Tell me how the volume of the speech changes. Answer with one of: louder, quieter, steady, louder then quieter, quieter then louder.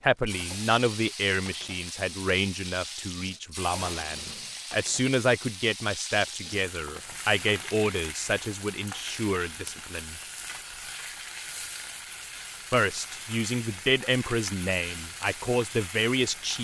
steady.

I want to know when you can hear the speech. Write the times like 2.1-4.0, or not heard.
0.0-10.2, 12.7-16.5.